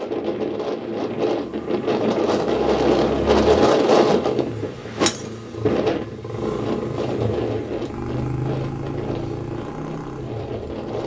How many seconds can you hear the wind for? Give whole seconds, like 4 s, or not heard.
11 s.